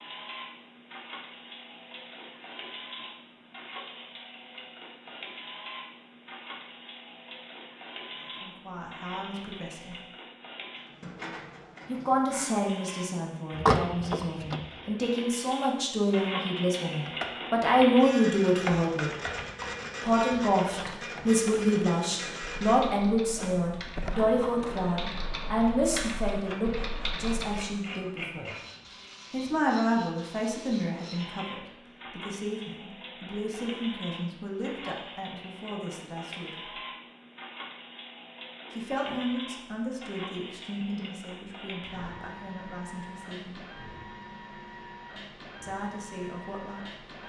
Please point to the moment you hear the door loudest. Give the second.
14 s.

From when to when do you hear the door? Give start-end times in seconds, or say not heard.
13.6-14.7, 23.9-24.7.